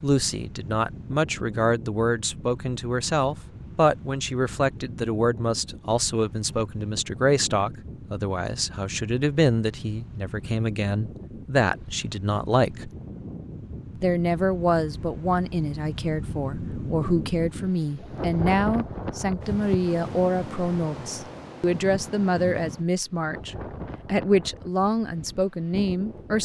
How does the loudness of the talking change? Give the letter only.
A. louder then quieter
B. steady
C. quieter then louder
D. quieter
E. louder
B.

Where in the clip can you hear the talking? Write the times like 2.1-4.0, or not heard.
0.0-12.9, 13.9-26.4.